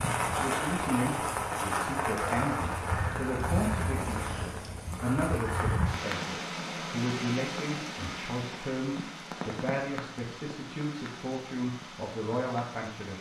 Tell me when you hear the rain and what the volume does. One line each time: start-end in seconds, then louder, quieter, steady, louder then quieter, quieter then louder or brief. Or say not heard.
0.0-13.1 quieter.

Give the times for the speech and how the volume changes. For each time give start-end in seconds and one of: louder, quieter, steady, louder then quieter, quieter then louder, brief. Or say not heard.
0.3-13.1 steady.